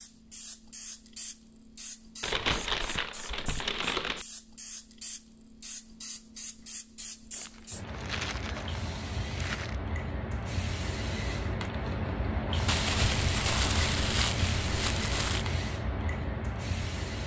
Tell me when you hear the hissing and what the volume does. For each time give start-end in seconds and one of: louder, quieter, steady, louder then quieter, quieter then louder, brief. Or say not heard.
0.0-17.2 louder.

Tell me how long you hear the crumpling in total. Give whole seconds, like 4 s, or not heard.
7 s.